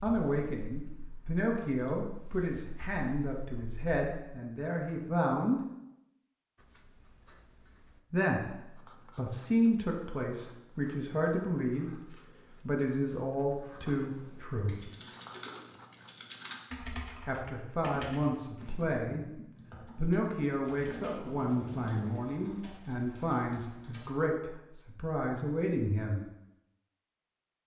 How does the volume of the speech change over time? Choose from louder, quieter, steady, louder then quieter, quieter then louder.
steady.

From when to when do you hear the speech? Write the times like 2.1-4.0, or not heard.
0.0-5.6, 8.1-14.9, 17.2-26.2.